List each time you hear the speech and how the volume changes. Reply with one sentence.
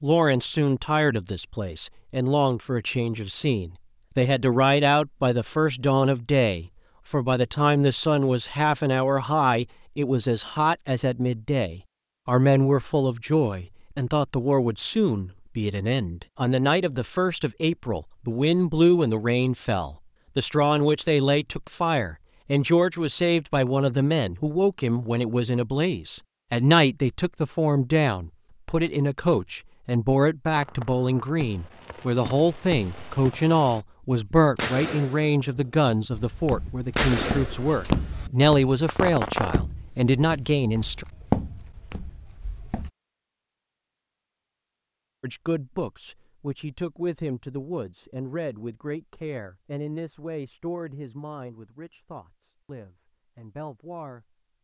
You can hear the speech from 0.0 to 41.0 s, at a steady volume; and from 45.2 to 54.4 s, getting quieter.